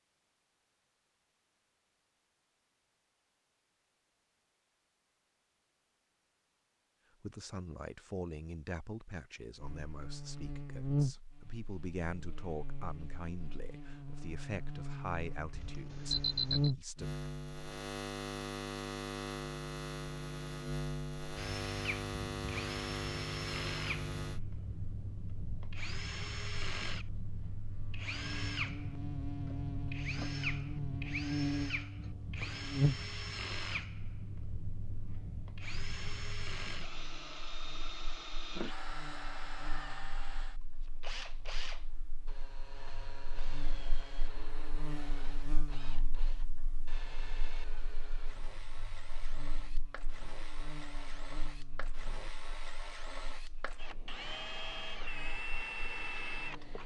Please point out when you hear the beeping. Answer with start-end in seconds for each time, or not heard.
15.5-16.7.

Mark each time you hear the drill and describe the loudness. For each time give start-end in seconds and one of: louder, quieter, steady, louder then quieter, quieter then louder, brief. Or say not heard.
21.4-56.8 quieter then louder.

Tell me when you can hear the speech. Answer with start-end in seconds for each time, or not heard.
7.2-17.2.